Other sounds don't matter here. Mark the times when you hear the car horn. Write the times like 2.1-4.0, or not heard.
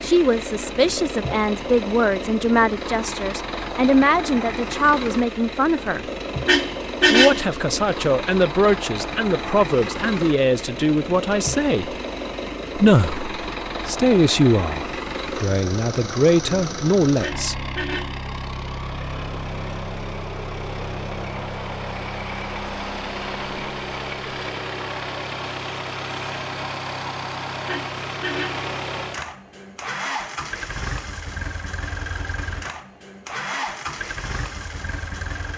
6.5-7.4, 17.2-18.2, 27.6-28.6.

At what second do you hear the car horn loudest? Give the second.
7 s.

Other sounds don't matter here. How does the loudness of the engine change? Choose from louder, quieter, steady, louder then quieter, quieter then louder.
steady.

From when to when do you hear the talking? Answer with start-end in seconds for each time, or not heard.
0.0-6.0, 7.1-11.9, 12.8-17.6.